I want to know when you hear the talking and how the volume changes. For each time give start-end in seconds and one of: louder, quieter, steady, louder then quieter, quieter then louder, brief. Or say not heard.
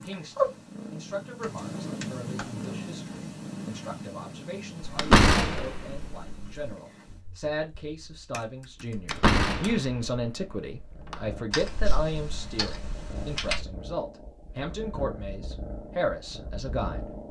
0.0-17.1 louder.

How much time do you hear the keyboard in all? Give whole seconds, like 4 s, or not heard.
5 s.